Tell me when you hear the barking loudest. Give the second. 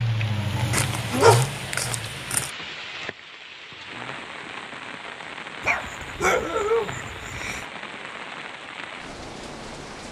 1 s.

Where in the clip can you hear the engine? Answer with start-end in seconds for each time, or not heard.
0.0-2.2.